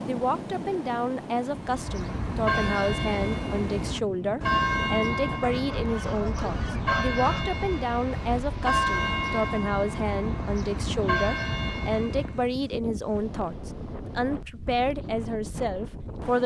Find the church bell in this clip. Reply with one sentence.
You can hear the church bell from 1.5 to 12.5 s.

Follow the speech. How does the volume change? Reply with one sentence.
The volume of the speech stays about the same.